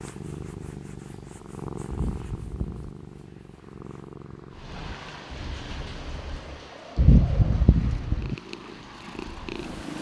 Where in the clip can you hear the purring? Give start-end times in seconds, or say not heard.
0.0-9.9.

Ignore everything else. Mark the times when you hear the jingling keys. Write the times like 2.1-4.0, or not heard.
1.9-3.0, 7.0-8.3.